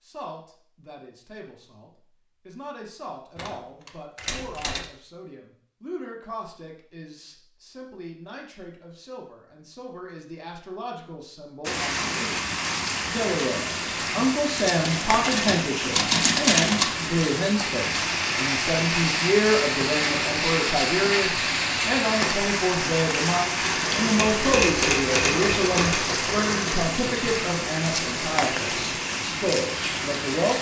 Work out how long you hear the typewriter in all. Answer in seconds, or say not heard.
5 s.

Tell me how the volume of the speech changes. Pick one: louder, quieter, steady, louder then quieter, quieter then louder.
louder.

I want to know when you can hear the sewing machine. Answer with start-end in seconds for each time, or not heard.
23.6-29.2.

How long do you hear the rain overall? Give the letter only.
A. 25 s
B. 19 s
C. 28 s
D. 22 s
B.